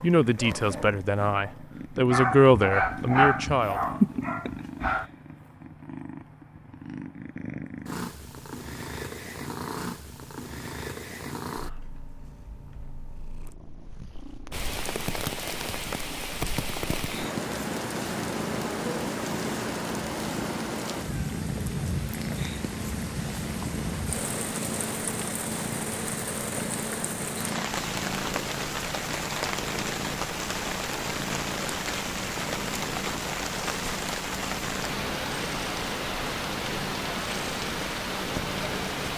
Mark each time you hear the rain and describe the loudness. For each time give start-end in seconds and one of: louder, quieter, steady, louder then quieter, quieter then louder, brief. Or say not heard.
14.5-39.1 steady.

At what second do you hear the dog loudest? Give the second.
3 s.